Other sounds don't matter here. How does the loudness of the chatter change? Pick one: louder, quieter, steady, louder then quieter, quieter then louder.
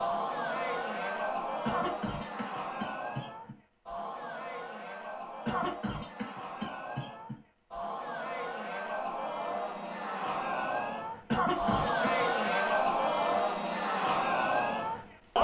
quieter then louder.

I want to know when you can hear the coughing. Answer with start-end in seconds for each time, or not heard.
1.6-3.5, 5.5-7.3, 11.3-12.2.